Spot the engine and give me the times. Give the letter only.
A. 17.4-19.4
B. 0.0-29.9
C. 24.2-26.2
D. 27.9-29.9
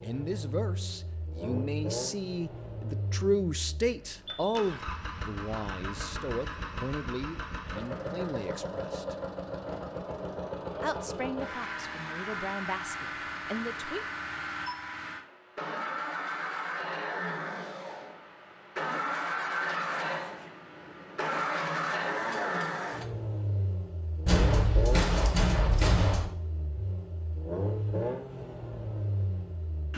B.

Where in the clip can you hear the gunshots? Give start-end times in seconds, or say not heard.
24.2-26.2.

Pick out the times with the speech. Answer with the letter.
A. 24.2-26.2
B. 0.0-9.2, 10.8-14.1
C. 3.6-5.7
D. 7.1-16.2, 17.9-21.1
B.